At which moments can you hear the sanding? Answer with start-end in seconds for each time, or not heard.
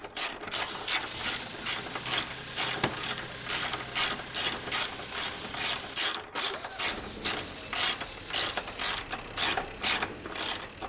1.1-3.9, 6.4-8.9.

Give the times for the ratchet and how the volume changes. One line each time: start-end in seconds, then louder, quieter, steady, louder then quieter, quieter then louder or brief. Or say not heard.
0.0-10.8 steady.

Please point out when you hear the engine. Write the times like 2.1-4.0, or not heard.
0.0-10.8.